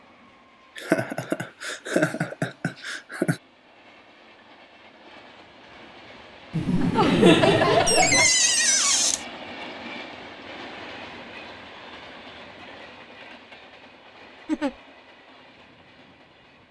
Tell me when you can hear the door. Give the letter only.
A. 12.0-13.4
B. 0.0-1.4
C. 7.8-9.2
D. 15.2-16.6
C.